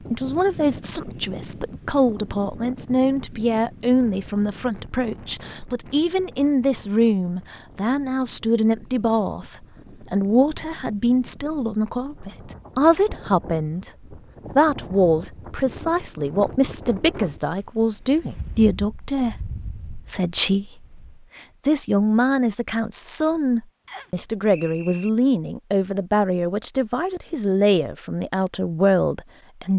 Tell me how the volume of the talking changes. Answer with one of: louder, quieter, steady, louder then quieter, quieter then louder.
steady.